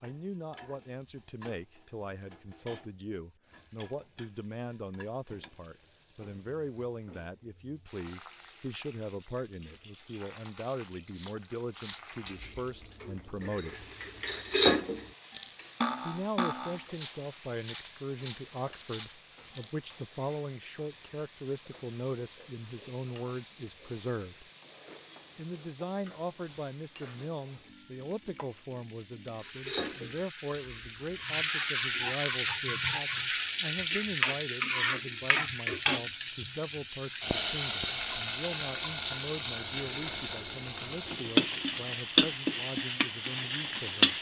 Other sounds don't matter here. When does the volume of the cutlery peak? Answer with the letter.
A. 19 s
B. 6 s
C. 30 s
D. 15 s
D.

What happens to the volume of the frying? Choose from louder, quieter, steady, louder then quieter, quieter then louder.
louder.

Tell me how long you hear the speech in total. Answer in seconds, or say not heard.
41 s.